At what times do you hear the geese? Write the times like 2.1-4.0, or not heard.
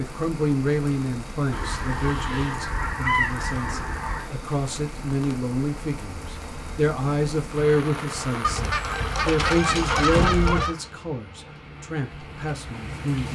1.5-4.2, 8.4-10.8.